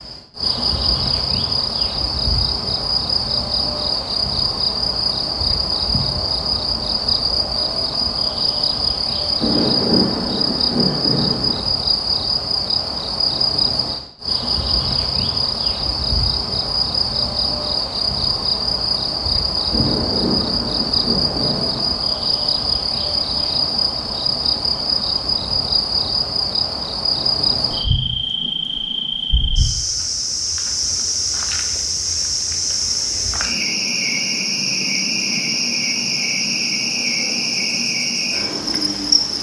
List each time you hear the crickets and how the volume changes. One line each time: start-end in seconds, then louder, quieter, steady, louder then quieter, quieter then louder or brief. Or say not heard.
0.0-39.3 steady.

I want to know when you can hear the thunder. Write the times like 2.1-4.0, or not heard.
9.4-11.7, 19.7-21.9.